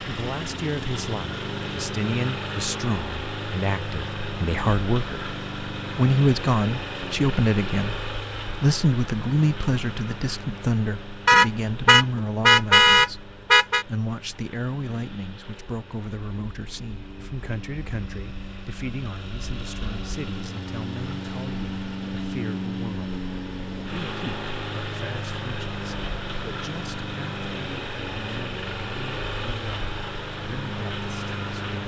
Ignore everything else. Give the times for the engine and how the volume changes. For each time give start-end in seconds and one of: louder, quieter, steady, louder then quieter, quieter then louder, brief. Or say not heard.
0.0-31.8 quieter then louder.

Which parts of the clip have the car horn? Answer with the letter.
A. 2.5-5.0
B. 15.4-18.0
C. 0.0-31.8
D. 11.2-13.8
D.